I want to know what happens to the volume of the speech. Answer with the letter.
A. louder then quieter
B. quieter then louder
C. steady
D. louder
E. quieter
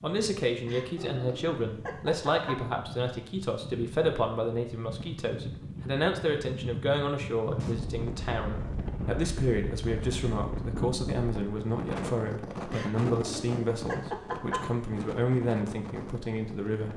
C.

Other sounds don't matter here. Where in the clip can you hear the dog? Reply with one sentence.
You can hear the dog from 0.7 to 2.6 s and from 12.7 to 14.7 s.